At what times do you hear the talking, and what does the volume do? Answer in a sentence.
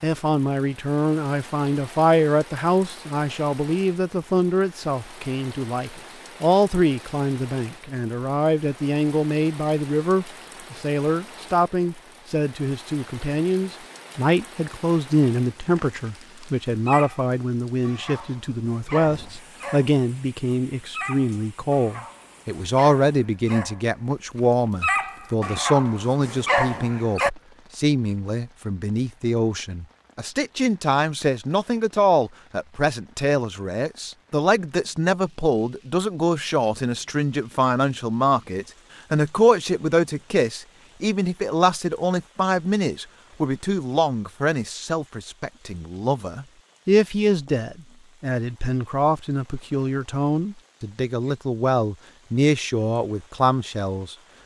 You can hear the talking from 0.0 to 54.1 s, at a steady volume.